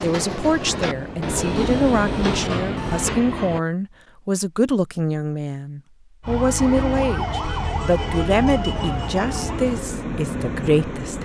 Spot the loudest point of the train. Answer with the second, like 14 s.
2 s.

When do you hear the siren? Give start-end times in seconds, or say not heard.
6.2-9.8.